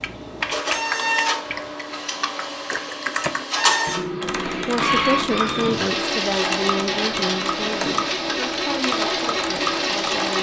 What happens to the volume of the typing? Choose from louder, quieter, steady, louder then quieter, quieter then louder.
steady.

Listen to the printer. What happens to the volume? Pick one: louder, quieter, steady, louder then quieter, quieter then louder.
steady.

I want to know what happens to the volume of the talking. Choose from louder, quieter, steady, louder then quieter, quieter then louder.
quieter.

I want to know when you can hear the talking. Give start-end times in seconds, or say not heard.
4.6-10.3.